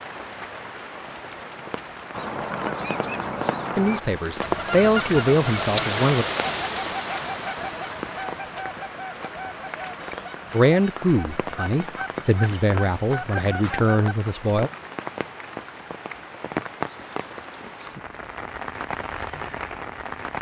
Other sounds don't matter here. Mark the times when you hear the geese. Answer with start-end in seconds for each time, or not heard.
2.1-14.2.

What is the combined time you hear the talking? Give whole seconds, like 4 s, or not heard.
7 s.